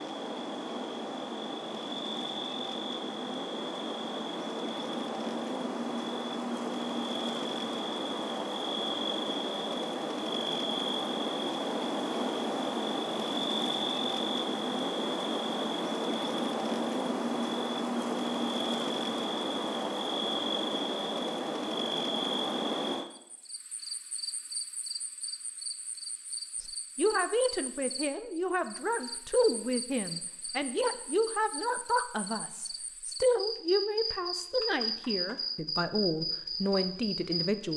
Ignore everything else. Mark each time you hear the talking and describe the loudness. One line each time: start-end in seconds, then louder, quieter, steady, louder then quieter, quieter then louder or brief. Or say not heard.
26.6-37.7 steady.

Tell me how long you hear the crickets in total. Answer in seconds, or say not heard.
38 s.